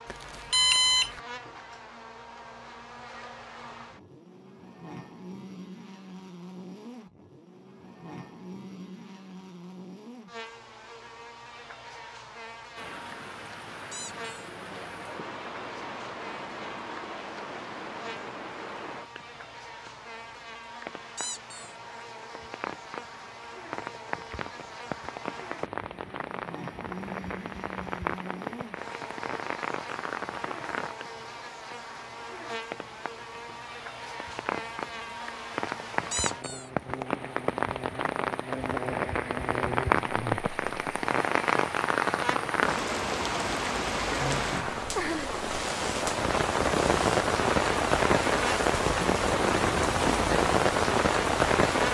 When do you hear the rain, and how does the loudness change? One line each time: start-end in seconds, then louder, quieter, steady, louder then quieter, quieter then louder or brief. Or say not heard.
12.8-51.9 louder.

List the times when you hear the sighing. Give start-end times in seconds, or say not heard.
not heard.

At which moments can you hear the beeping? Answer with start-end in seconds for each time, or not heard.
0.1-1.2.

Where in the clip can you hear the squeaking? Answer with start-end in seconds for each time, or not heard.
13.9-14.3, 21.1-21.8, 36.1-36.7.